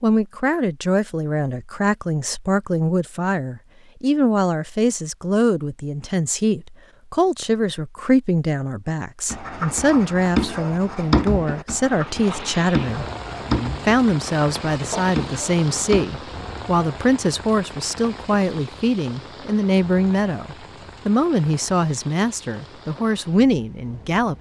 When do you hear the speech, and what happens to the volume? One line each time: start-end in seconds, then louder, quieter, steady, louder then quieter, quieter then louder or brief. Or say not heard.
0.0-24.3 steady.